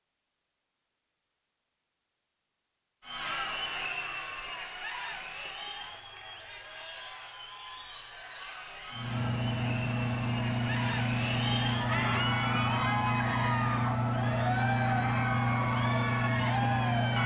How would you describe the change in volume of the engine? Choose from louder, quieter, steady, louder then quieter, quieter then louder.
steady.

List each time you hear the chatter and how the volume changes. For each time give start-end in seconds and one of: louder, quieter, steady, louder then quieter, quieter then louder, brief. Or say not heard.
3.0-17.2 quieter then louder.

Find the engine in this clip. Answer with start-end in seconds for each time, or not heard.
8.9-17.2.